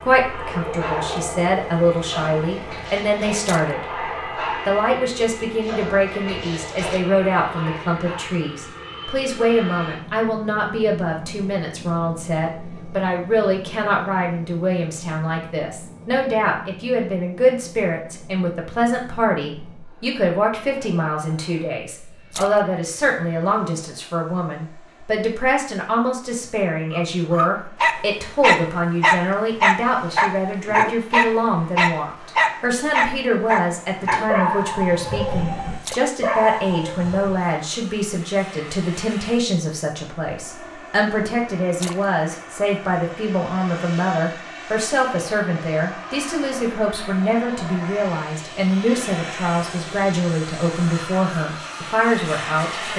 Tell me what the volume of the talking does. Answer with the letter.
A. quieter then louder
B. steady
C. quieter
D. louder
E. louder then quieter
B.